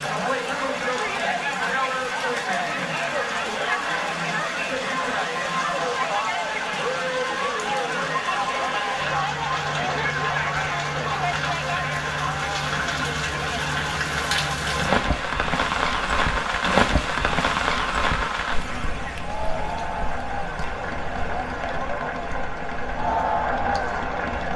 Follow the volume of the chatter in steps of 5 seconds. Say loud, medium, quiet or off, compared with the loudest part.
loud, loud, loud, medium, loud.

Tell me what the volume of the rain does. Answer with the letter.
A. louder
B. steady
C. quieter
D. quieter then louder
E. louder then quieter
E.